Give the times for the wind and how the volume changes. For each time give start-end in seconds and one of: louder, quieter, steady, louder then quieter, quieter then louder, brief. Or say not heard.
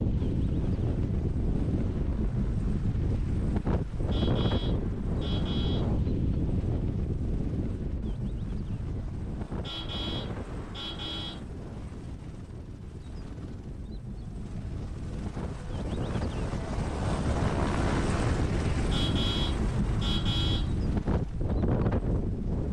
0.0-22.6 quieter then louder.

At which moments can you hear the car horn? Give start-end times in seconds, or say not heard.
4.1-5.9, 9.6-11.4, 18.9-20.7.